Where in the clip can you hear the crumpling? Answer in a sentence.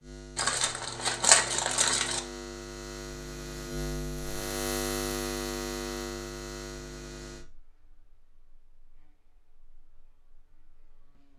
The crumpling can be heard from 0.3 to 2.2 s.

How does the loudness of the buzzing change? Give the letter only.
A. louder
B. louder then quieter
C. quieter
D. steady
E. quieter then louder
B.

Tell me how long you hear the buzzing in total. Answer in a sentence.
You can hear the buzzing for 11 seconds altogether.